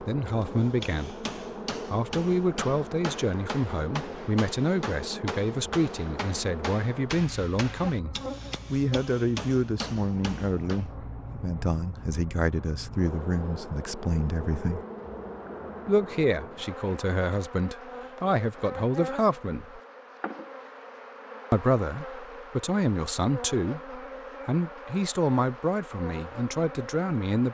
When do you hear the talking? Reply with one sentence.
You can hear the talking from 0.0 to 14.8 s, from 15.8 to 19.8 s and from 21.5 to 27.5 s.